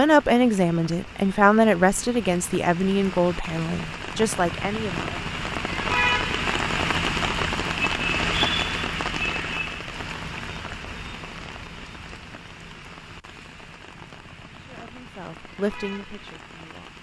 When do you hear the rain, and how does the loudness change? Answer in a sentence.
The rain can be heard from 0.0 to 16.9 s, getting louder then quieter.